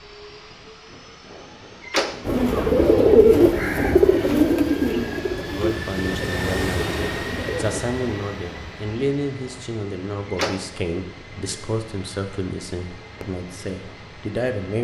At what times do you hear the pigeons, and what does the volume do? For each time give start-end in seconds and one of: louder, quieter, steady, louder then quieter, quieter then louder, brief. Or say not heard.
2.2-7.8 quieter.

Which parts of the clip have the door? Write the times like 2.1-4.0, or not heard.
1.8-2.2, 10.2-10.7.